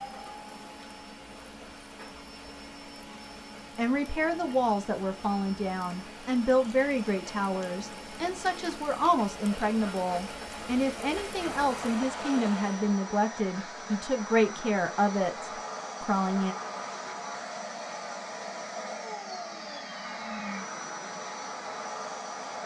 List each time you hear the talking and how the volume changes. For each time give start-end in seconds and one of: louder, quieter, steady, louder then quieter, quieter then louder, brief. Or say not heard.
3.8-16.6 steady.